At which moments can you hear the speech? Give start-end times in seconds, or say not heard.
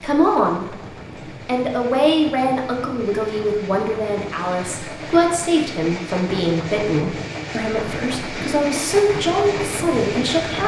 0.0-0.8, 1.4-10.6.